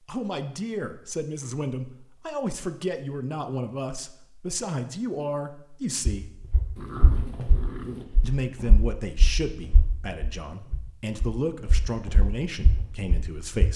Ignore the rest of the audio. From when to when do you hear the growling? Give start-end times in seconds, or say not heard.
6.8-8.1.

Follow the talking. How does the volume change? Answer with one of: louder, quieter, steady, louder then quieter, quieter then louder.
steady.